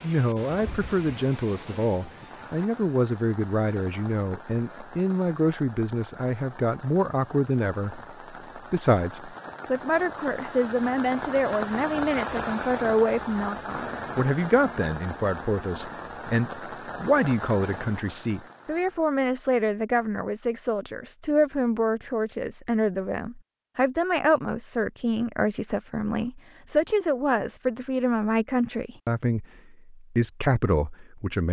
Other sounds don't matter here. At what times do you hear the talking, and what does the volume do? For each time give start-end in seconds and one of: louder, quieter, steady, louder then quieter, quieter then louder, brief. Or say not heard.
0.0-31.4 steady.